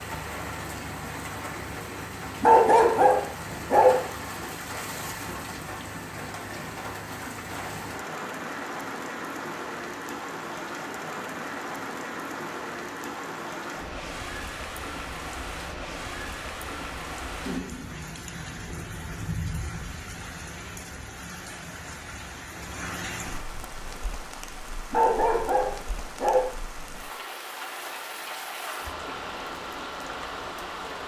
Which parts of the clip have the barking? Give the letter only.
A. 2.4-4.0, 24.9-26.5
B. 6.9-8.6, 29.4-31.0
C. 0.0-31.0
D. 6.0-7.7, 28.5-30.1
A.